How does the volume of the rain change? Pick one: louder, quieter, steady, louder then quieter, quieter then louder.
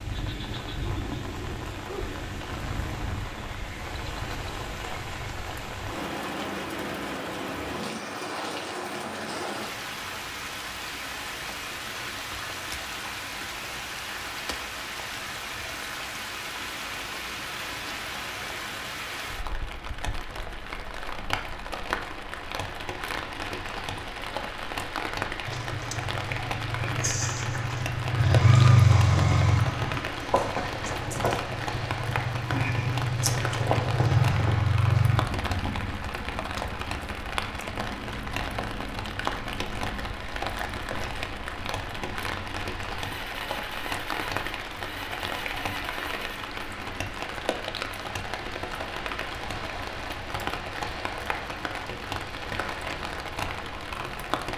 steady.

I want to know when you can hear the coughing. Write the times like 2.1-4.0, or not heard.
not heard.